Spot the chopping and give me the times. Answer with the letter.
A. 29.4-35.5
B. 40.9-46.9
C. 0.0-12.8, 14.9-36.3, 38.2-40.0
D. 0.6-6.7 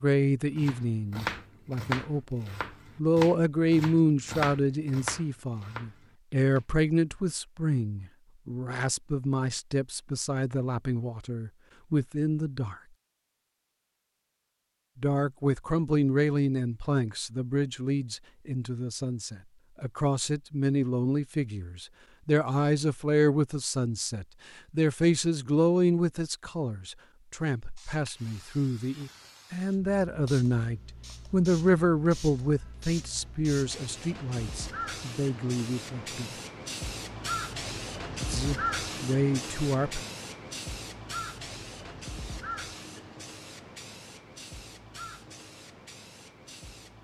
D.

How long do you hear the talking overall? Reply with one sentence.
You can hear the talking for 36 seconds altogether.